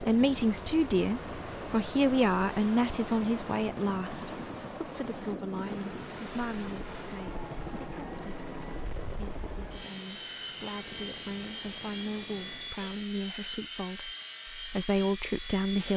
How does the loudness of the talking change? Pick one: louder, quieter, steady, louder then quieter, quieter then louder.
quieter then louder.